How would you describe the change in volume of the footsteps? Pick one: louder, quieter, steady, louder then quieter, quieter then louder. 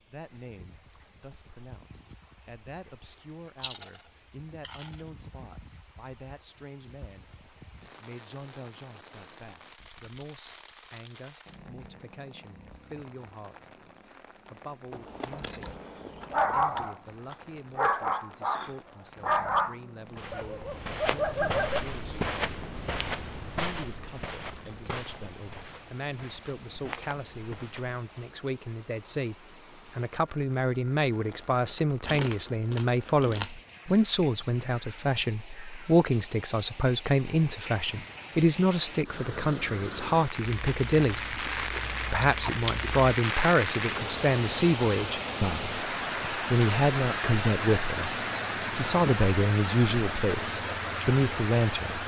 quieter.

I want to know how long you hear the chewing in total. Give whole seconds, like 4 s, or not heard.
8 s.